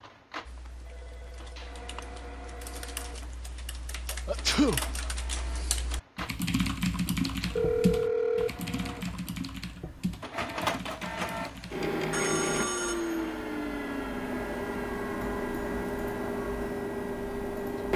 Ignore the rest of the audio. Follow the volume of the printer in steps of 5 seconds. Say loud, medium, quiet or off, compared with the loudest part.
quiet, quiet, loud, loud.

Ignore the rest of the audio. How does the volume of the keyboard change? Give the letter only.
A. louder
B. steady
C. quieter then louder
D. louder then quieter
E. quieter
D.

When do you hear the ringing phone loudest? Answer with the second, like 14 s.
8 s.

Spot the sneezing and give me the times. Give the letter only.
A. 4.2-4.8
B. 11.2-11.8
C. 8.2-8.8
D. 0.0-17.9
A.